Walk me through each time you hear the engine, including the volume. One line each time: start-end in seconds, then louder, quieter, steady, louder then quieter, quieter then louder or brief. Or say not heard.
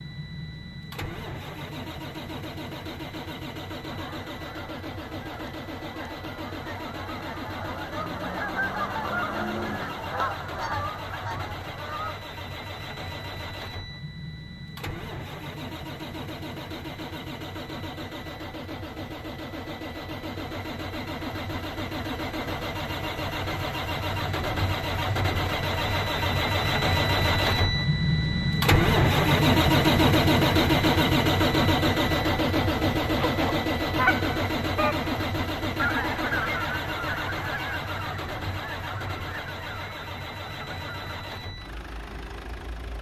0.0-42.9 louder then quieter.